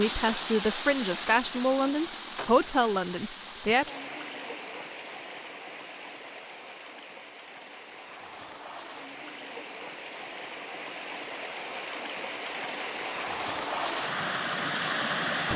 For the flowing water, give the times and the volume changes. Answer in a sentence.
The flowing water can be heard from 0.0 to 15.5 s, getting quieter then louder.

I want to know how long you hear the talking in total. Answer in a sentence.
The talking can be heard for 4 seconds in total.